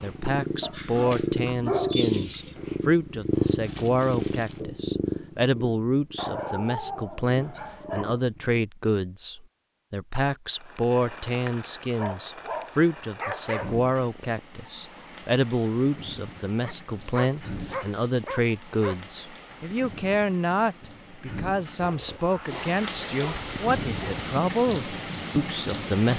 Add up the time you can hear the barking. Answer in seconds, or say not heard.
11 s.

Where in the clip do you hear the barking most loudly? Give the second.
2 s.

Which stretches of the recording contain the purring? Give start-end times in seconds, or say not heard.
0.0-8.7.